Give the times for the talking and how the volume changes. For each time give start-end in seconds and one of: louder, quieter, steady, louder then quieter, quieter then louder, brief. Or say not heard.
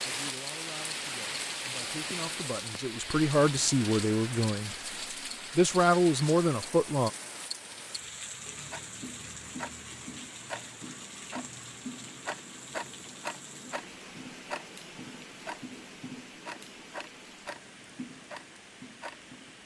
0.0-4.8 louder
5.5-7.1 brief.